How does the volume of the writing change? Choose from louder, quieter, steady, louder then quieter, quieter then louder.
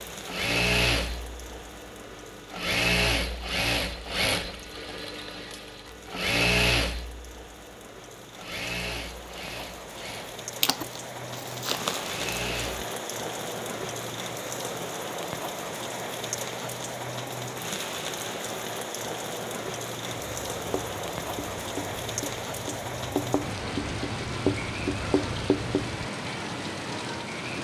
louder.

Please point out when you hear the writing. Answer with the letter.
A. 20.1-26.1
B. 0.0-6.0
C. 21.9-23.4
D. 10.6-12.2
A.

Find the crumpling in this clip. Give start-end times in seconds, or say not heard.
10.6-12.2.